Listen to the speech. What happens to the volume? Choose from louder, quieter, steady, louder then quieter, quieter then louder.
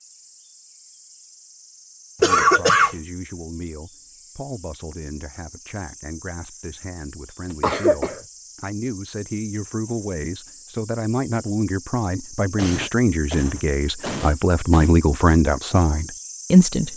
louder.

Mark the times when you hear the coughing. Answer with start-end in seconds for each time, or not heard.
2.2-3.0, 7.6-8.2, 12.6-14.9.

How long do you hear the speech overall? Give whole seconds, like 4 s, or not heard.
15 s.